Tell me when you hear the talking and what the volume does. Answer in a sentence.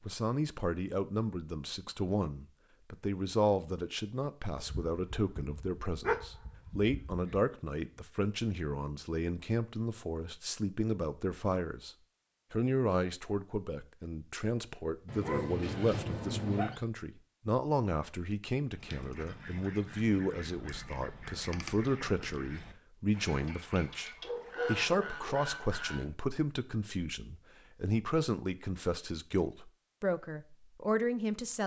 The talking can be heard from 0.0 to 11.9 s, at a steady volume; and from 12.5 to 31.6 s, at a steady volume.